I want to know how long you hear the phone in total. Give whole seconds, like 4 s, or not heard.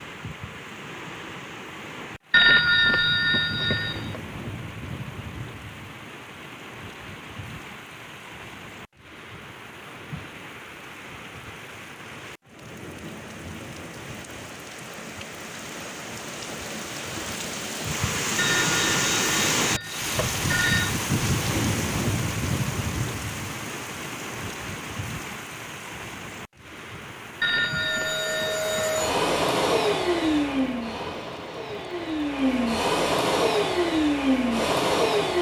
6 s.